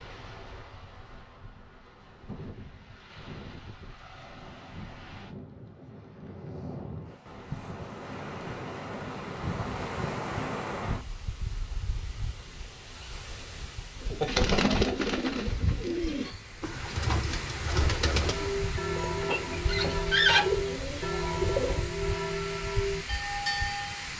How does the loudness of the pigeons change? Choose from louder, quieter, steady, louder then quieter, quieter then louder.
quieter then louder.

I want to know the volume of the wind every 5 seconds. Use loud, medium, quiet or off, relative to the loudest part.
medium, loud, loud, loud, loud.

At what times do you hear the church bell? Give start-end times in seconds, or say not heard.
18.3-24.1.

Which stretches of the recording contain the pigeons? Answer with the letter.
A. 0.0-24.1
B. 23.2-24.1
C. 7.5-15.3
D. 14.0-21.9
D.